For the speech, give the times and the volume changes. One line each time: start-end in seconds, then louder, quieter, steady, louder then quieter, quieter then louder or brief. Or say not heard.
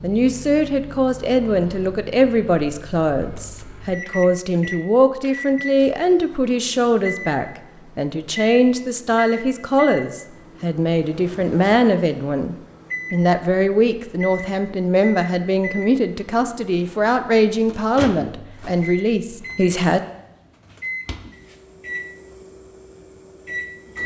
0.0-20.0 steady.